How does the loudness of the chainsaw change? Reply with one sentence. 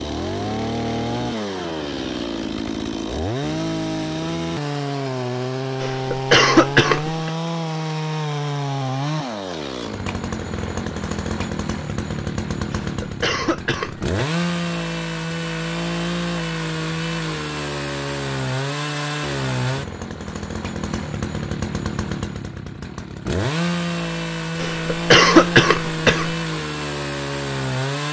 The loudness of the chainsaw stays about the same.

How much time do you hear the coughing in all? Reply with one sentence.
You can hear the coughing for 5 seconds altogether.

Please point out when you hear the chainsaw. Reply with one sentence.
You can hear the chainsaw from 0.0 to 28.0 s.